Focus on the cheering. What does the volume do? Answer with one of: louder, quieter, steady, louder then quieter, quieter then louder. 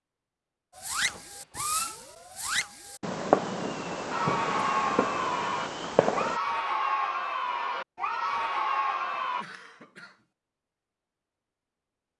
steady.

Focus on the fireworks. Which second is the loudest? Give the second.
3 s.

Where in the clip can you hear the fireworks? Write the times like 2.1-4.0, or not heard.
0.8-6.4.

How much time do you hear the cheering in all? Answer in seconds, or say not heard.
5 s.